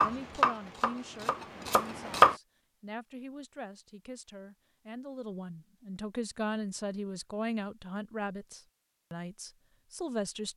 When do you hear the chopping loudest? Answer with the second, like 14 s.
2 s.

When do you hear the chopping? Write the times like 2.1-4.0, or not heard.
0.0-2.4.